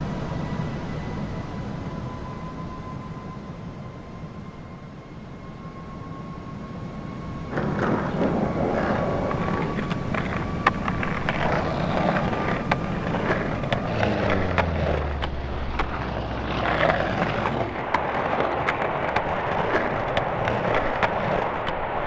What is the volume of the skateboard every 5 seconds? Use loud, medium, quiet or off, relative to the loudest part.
off, loud, loud, loud, loud.